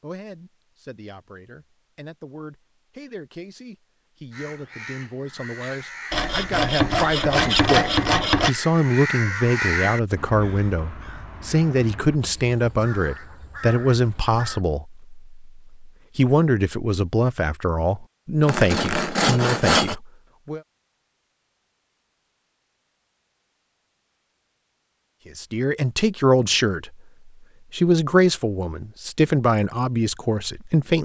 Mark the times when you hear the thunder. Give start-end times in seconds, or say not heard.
not heard.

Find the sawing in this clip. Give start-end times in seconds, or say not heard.
6.1-8.5, 18.4-19.9.